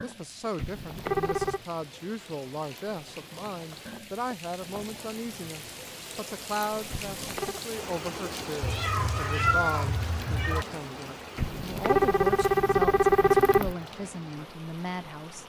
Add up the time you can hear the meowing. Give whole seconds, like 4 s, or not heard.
2 s.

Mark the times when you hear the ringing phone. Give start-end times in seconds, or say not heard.
0.6-1.6, 6.9-7.6, 11.3-13.8.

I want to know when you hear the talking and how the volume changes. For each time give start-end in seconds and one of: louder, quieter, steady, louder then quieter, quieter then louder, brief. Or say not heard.
0.0-15.4 steady.